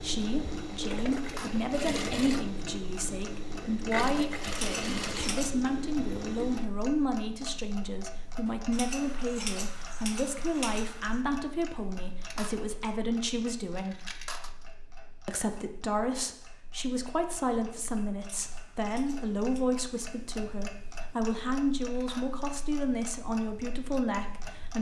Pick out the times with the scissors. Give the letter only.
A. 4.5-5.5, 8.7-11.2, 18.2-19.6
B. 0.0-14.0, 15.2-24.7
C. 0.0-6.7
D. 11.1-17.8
A.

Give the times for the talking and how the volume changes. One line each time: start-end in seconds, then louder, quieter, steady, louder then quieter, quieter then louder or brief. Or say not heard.
0.0-14.0 steady
15.2-24.7 steady.